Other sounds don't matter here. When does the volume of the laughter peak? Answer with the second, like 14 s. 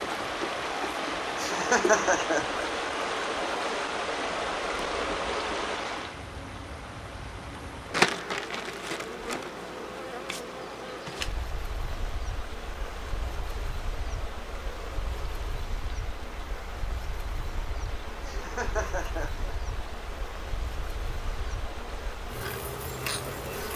2 s.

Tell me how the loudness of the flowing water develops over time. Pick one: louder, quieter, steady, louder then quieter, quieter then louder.
quieter.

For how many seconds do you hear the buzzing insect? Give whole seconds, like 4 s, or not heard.
24 s.